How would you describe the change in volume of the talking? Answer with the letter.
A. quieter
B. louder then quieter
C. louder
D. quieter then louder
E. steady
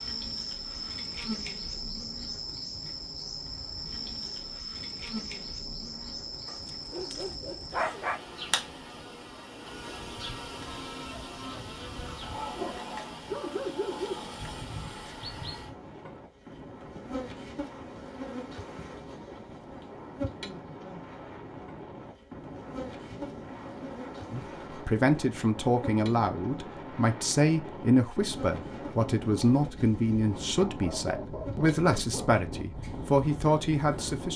E.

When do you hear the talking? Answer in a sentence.
The talking can be heard from 24.3 to 34.3 s.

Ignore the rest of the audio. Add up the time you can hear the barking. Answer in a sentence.
The barking can be heard for 5 seconds in total.